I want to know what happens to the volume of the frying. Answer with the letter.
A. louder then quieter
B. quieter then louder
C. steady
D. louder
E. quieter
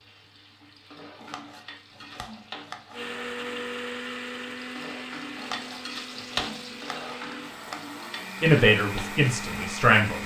A.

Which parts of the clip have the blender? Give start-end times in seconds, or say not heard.
2.9-10.2.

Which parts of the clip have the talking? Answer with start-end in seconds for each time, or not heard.
8.4-10.2.